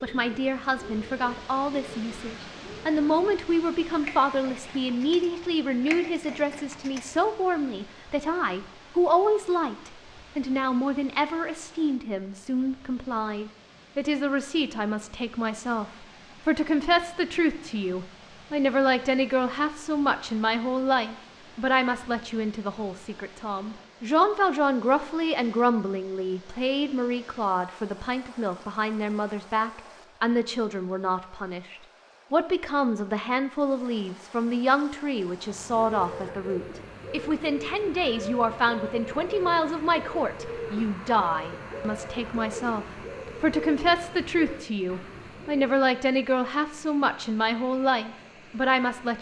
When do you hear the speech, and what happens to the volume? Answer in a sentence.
You can hear the speech from 0.0 to 49.1 s, at a steady volume.